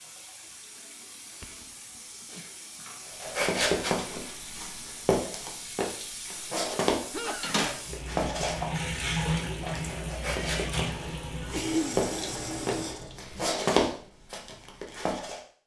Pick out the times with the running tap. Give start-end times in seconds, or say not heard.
0.0-13.8.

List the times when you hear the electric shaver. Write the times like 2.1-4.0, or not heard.
not heard.